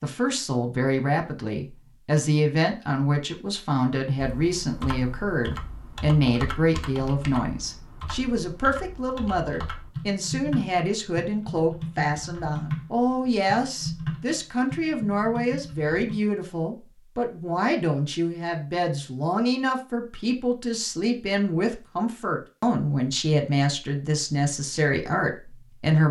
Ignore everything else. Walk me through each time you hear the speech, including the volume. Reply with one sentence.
The speech can be heard from 0.0 to 26.0 s, at a steady volume.